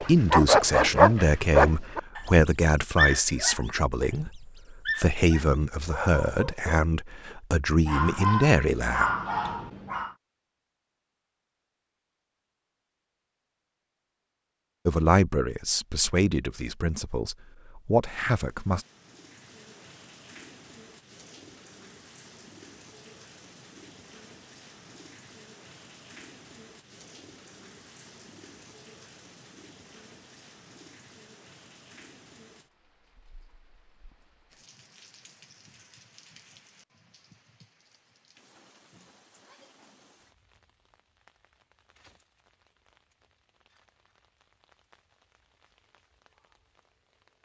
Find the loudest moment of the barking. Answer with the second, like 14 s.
1 s.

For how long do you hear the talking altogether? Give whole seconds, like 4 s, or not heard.
13 s.